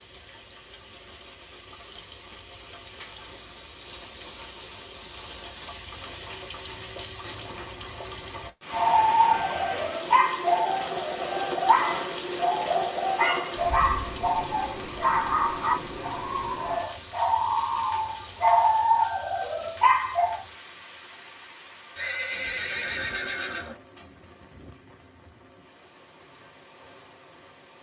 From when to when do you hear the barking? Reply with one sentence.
The barking can be heard from 8.7 to 20.4 s.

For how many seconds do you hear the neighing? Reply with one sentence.
The neighing can be heard for 2 seconds in total.